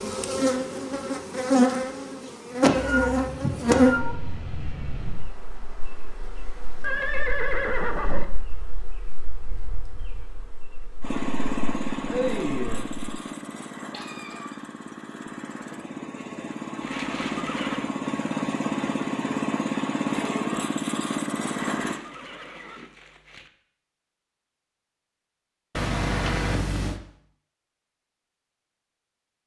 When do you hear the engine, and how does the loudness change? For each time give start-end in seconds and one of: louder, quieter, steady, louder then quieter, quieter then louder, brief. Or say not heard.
11.0-22.0 quieter then louder.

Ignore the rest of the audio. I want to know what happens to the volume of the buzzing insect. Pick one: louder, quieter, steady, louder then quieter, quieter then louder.
quieter then louder.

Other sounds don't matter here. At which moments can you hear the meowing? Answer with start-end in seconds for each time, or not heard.
2.6-5.2, 13.9-14.6, 25.8-27.0.